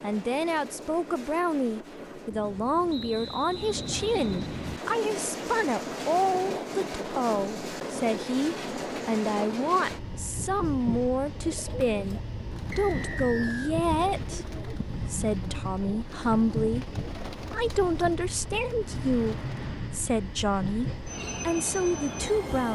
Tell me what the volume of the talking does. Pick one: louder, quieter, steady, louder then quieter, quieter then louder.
steady.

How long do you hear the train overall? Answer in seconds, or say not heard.
23 s.